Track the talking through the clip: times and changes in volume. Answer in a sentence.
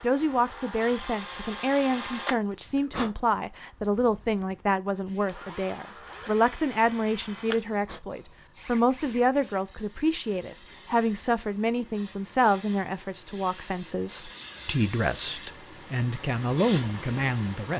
The talking can be heard from 0.0 to 17.7 s, at a steady volume.